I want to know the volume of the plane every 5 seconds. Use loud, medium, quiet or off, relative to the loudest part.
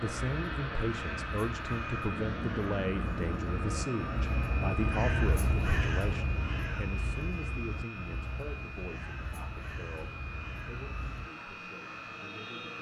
loud, medium, medium.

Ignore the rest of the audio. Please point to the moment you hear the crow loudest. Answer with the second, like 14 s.
5 s.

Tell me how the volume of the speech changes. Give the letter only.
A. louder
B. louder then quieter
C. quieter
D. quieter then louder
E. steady
C.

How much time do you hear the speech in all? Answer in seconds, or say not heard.
13 s.